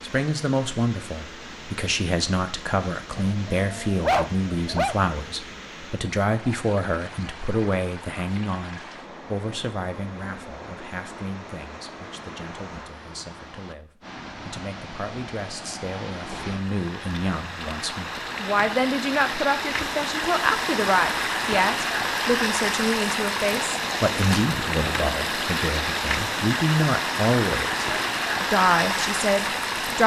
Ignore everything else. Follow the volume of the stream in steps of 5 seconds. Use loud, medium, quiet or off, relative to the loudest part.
quiet, quiet, quiet, medium, loud, loud.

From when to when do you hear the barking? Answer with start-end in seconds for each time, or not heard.
3.1-5.0.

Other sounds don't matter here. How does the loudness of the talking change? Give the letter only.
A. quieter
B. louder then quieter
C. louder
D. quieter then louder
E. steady
D.